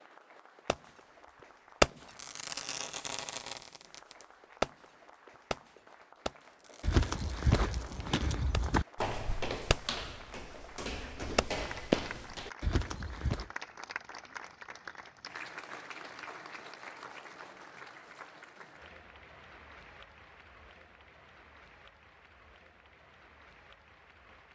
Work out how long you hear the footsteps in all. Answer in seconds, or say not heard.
7 s.